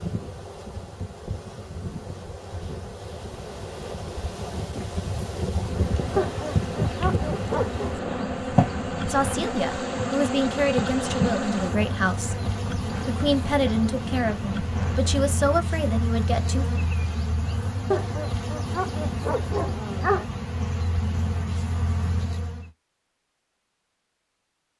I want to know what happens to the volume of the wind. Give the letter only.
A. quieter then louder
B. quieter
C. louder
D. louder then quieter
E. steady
D.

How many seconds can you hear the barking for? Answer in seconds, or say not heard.
4 s.